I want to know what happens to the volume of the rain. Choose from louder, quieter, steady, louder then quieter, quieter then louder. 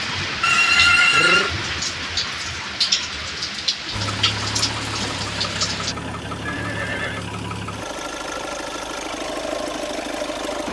steady.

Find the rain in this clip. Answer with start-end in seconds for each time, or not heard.
0.0-6.0.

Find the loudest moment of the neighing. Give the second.
1 s.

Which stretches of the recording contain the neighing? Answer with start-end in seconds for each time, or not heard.
0.4-1.6, 6.5-7.2.